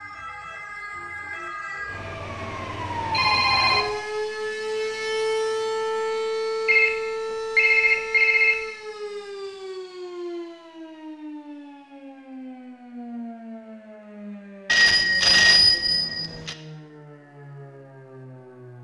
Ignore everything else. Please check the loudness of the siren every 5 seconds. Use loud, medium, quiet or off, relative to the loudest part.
loud, loud, medium, quiet.